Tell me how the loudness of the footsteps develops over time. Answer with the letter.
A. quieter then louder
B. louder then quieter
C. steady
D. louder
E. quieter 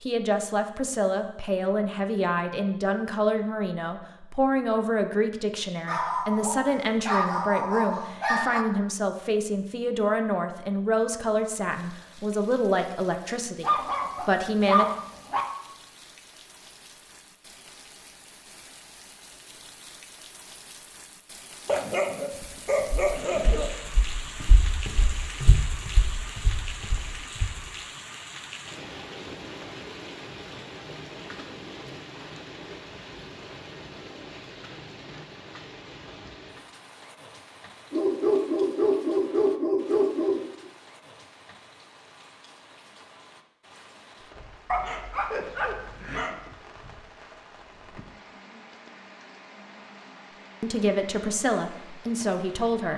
B.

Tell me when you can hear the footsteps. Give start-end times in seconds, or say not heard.
21.7-27.6.